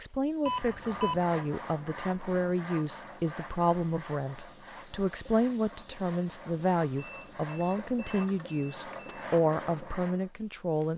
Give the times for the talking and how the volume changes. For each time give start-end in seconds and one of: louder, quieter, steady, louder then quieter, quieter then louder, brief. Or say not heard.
0.0-10.9 steady.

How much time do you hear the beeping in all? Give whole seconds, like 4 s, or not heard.
3 s.